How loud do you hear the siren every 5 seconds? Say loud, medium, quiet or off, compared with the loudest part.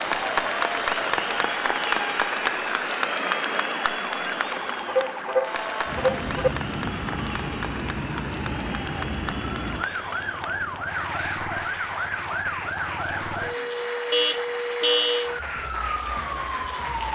medium, loud, loud, loud.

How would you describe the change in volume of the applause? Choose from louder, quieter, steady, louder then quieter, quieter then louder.
quieter.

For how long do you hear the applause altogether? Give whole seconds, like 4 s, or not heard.
17 s.